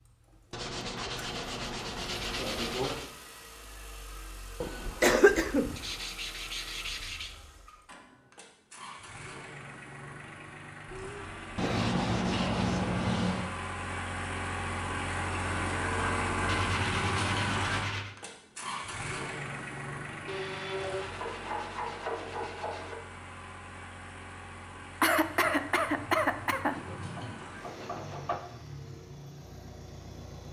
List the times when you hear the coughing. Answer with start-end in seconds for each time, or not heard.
4.6-5.8, 10.8-11.9, 25.0-27.4.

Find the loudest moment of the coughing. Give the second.
5 s.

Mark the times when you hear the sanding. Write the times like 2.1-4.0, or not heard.
0.5-3.1, 5.8-7.3, 11.6-13.5, 16.4-18.1, 20.2-23.1, 26.7-28.4.